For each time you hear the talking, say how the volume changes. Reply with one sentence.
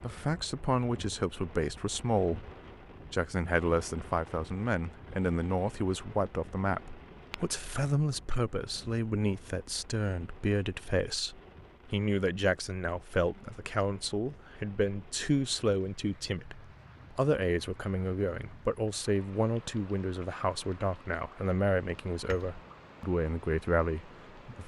You can hear the talking briefly from 0.0 to 2.5 s; and from 3.1 to 24.6 s, at a steady volume.